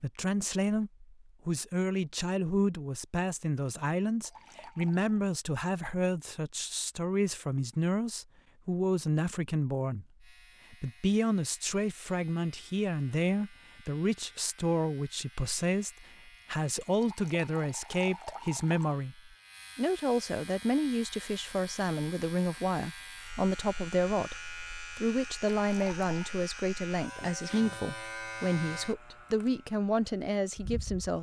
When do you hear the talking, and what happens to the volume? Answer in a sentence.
The talking can be heard from 0.0 to 31.1 s, at a steady volume.